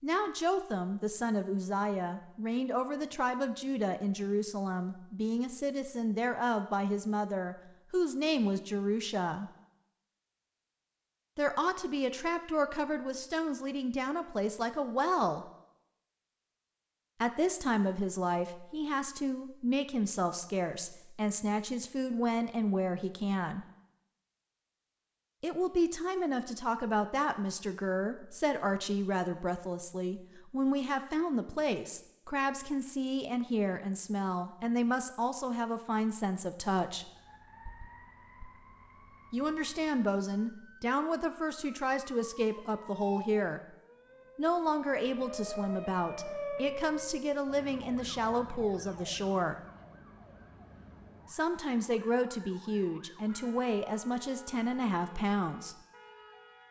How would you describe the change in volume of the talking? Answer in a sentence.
The loudness of the talking stays about the same.